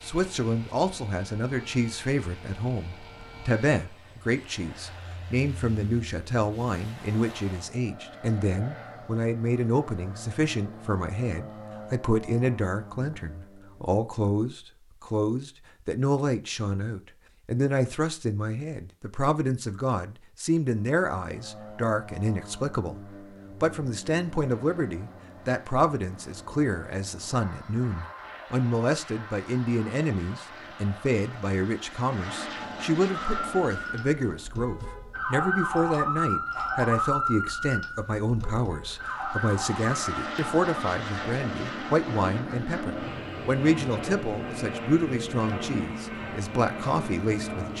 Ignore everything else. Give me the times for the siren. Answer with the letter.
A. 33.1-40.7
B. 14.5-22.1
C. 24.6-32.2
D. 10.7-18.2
A.